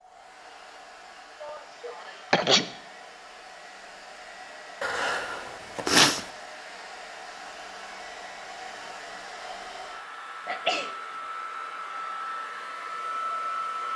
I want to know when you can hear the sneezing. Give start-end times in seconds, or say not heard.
1.4-2.6, 4.8-6.2, 10.4-10.9.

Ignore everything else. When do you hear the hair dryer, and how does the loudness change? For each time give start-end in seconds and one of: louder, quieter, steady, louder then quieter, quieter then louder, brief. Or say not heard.
0.0-13.9 louder.